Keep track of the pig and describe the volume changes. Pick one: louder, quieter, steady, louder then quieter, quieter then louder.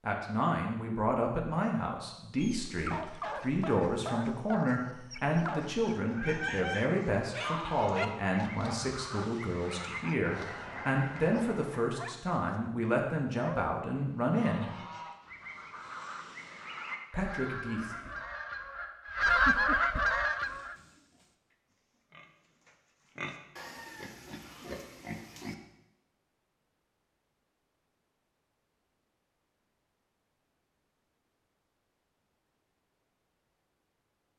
louder.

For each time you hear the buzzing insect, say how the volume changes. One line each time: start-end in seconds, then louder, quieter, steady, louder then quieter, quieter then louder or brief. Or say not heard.
not heard.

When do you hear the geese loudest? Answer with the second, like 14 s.
19 s.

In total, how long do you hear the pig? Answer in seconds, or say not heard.
5 s.